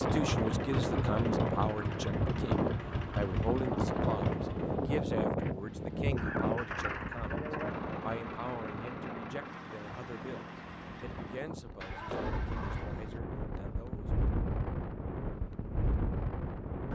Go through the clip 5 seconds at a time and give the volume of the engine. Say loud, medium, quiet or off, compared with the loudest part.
loud, loud, medium, off.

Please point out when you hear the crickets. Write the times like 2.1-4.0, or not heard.
not heard.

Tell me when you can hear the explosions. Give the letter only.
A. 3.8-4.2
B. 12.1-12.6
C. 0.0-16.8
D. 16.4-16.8
B.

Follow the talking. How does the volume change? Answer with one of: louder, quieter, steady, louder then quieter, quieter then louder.
quieter.